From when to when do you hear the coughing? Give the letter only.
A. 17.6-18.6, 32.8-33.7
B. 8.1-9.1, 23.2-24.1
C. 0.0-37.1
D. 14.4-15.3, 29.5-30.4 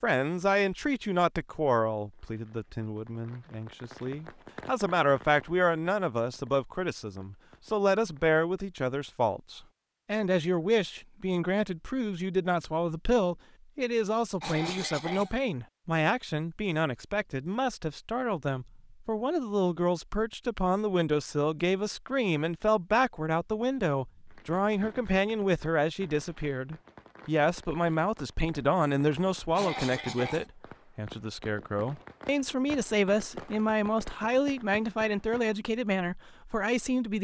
D.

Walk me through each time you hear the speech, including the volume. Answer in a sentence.
The speech can be heard from 0.0 to 37.1 s, at a steady volume.